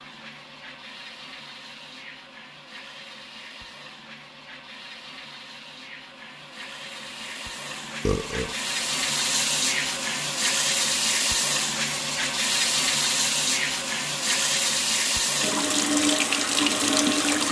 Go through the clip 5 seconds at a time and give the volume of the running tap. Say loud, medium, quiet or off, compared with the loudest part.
quiet, medium, loud, loud.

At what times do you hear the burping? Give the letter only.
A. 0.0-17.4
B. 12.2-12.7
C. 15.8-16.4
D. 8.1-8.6
D.